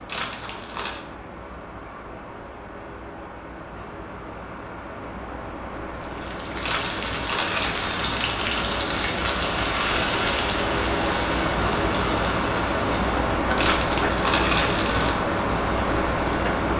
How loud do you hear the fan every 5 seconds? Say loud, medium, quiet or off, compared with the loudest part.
quiet, medium, loud, loud.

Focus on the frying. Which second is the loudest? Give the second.
10 s.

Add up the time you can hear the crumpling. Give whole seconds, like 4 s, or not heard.
4 s.